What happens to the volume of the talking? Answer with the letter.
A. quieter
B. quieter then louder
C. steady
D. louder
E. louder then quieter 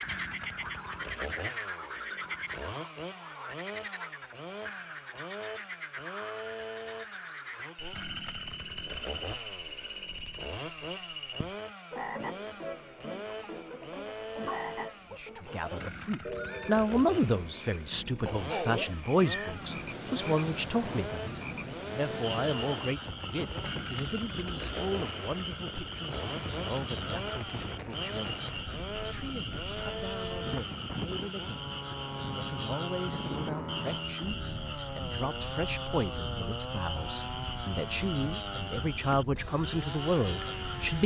B.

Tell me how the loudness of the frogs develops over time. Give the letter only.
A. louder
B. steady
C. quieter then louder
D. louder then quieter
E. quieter
B.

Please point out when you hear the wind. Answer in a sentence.
You can hear the wind from 19.4 to 41.0 s.